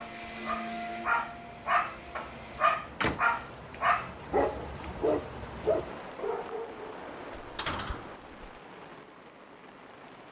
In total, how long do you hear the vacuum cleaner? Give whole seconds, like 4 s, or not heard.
3 s.